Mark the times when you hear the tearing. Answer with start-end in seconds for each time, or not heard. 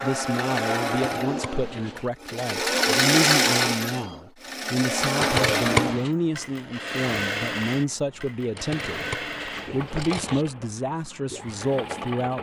not heard.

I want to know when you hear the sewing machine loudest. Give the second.
3 s.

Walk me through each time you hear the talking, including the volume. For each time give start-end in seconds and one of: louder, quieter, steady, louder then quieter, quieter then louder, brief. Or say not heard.
0.0-12.3 steady.